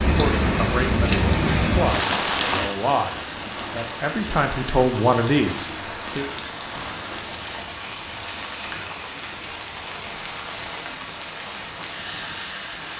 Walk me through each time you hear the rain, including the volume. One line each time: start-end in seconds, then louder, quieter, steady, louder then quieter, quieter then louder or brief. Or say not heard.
0.0-12.9 quieter.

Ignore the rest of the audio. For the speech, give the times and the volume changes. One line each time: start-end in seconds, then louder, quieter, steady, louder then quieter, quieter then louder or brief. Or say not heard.
0.1-6.2 louder.